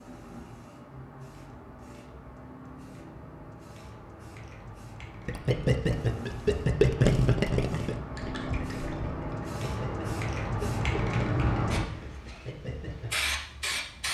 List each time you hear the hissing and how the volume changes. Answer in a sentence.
The hissing can be heard from 0.0 to 14.0 s, getting louder.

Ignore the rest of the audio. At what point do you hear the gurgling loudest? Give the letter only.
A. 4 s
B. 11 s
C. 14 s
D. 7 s
D.